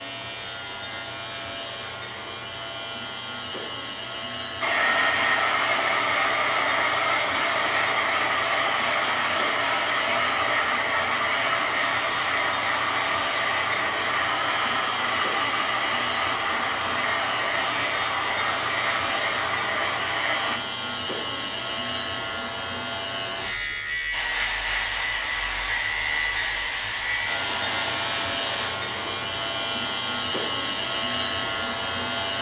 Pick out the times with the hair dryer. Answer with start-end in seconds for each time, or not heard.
4.6-20.6, 24.1-28.7.